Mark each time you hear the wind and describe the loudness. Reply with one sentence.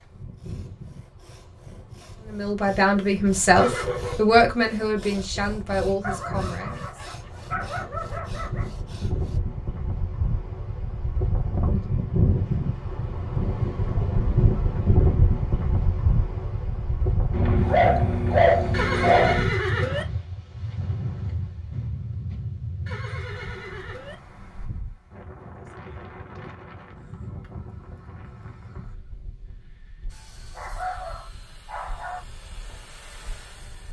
You can hear the wind from 0.0 to 33.8 s, getting louder then quieter.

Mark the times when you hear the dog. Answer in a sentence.
You can hear the dog from 6.0 to 8.7 s, from 17.3 to 19.5 s and from 30.6 to 32.2 s.